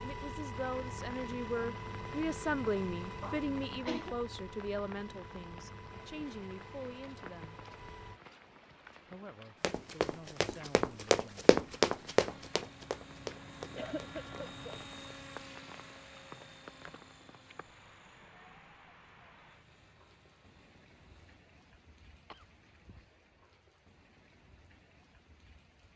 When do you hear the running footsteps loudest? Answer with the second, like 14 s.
12 s.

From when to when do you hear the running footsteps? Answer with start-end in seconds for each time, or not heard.
9.6-14.9.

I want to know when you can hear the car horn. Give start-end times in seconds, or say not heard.
not heard.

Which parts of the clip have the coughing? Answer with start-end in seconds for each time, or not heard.
3.2-4.2, 13.8-14.8, 22.3-23.1.